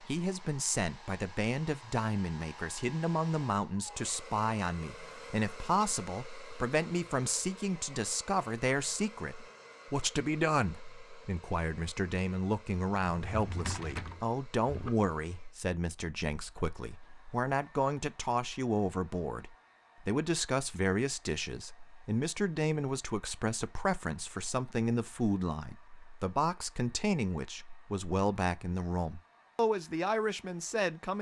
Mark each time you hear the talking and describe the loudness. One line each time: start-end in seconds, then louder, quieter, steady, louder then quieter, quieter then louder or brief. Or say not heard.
0.1-31.1 steady.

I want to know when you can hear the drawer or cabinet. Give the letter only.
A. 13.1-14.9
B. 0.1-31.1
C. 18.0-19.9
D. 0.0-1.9
A.